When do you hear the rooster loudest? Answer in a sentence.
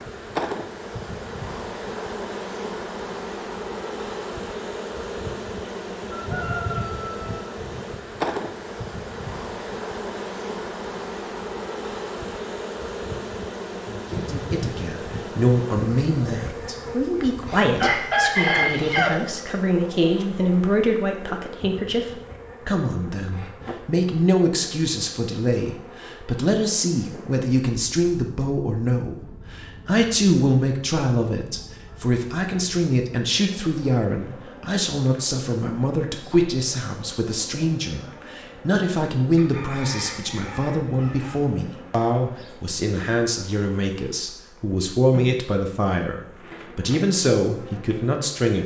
The volume of the rooster peaks at 19 seconds.